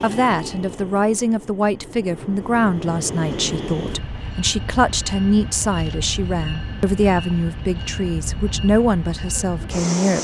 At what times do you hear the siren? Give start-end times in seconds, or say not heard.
not heard.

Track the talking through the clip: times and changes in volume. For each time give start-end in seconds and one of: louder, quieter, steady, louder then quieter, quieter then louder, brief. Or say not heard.
0.0-10.1 steady.